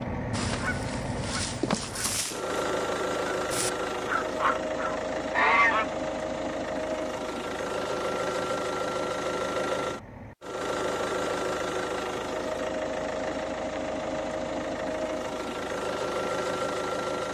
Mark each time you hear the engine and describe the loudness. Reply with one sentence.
You can hear the engine from 0.0 to 17.2 s, at a steady volume.